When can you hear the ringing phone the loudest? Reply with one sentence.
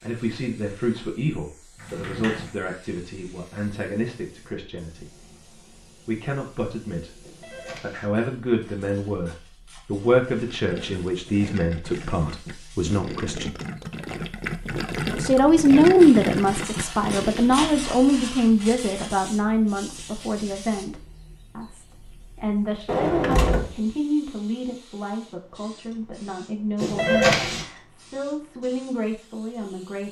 The loudest moment of the ringing phone is at 27 seconds.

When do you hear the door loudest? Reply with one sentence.
The volume of the door peaks at 23 seconds.